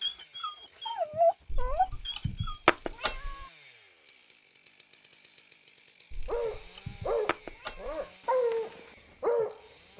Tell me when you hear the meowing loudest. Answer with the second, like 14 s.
3 s.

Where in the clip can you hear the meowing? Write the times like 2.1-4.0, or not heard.
1.4-3.5, 6.1-8.1.